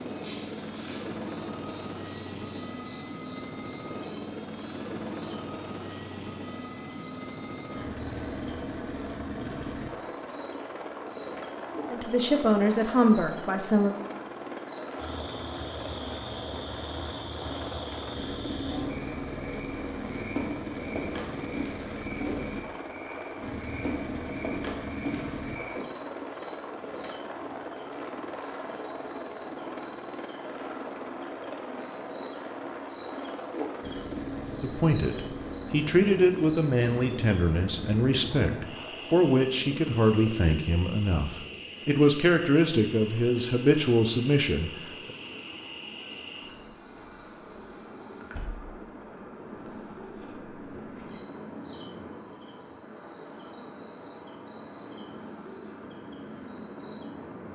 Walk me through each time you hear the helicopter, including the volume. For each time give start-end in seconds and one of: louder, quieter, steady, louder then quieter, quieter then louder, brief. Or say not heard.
0.0-57.5 quieter.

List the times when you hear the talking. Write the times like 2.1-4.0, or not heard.
11.9-13.9, 34.6-45.1.